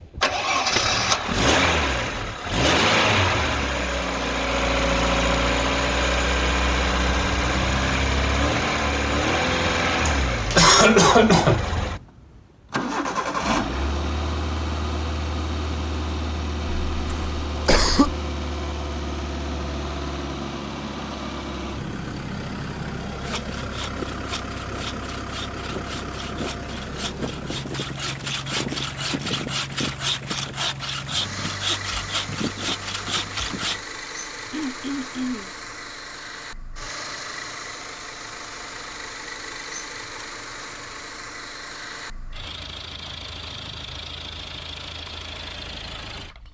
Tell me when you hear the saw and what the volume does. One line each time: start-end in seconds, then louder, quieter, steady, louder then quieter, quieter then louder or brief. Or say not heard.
23.1-33.8 louder.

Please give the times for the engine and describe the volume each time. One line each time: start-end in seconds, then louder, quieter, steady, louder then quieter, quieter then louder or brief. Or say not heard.
0.0-46.4 quieter.